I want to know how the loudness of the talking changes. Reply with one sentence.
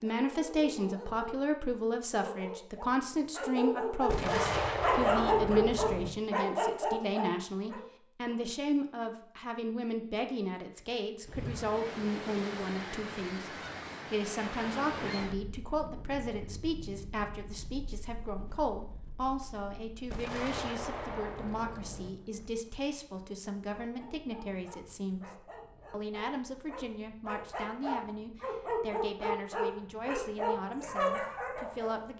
The volume of the talking goes down.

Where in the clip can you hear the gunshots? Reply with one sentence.
You can hear the gunshots from 4.0 to 6.1 s and from 20.1 to 22.1 s.